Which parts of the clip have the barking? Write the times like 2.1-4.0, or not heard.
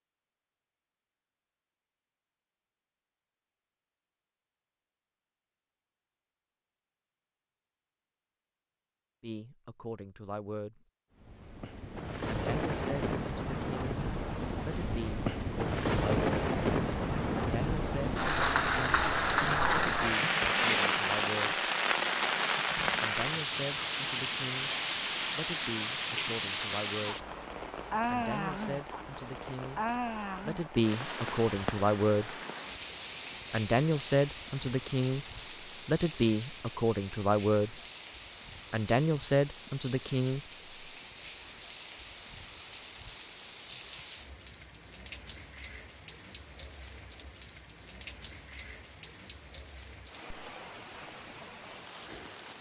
not heard.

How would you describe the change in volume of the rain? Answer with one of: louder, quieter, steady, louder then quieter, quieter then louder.
quieter.